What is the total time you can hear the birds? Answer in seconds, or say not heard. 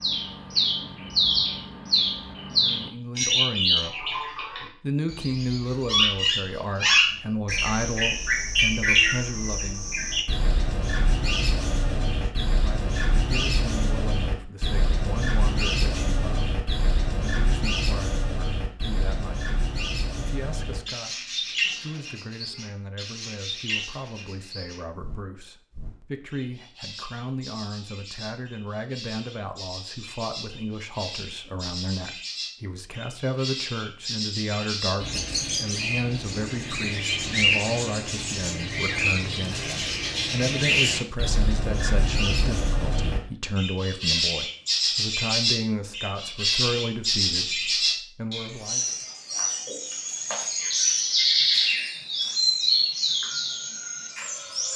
55 s.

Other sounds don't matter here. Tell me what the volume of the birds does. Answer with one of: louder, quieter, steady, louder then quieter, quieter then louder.
quieter then louder.